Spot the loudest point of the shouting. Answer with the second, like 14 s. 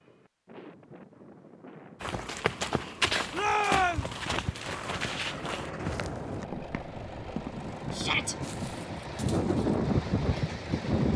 4 s.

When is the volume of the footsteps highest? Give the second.
3 s.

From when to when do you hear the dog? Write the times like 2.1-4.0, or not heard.
not heard.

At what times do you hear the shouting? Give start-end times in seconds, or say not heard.
3.3-4.0, 7.9-8.3.